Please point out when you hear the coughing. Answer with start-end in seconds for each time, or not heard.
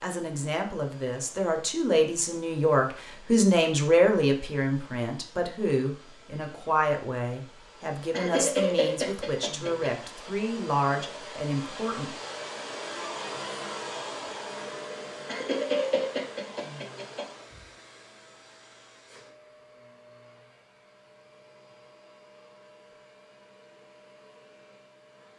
8.1-9.9, 15.2-17.2.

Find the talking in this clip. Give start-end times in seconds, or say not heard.
0.0-12.2.